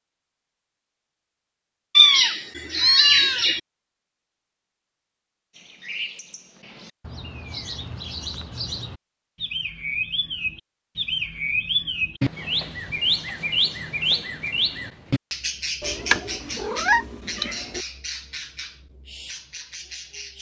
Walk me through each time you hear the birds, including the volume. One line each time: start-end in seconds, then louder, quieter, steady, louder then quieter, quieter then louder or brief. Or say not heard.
5.5-20.3 louder then quieter.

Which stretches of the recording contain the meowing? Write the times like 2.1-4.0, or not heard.
1.9-3.6, 15.8-17.8.